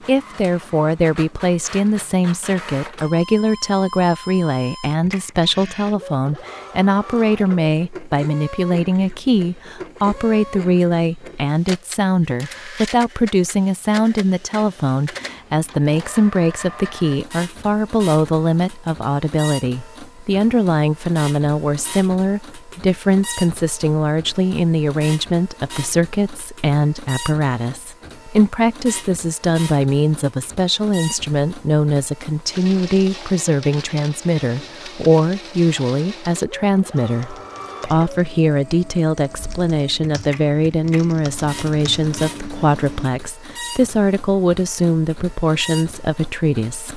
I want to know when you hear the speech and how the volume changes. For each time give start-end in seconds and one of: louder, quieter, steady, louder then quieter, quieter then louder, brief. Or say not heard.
0.1-46.9 steady.